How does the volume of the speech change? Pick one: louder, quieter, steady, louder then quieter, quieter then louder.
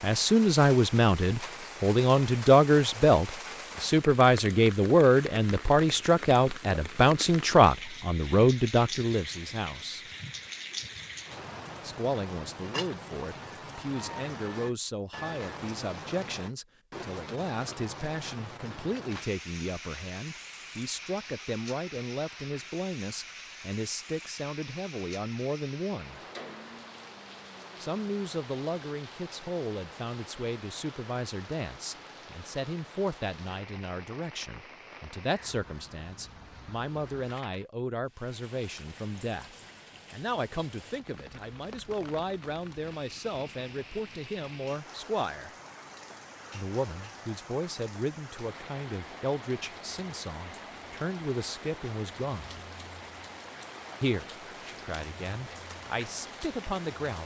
quieter.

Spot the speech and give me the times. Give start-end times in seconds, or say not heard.
0.0-10.1, 11.8-26.2, 27.8-45.5, 46.5-52.6, 54.0-57.2.